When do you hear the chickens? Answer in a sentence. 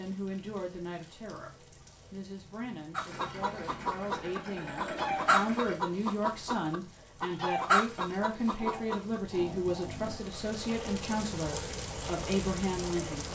The chickens can be heard from 3.0 to 9.2 s.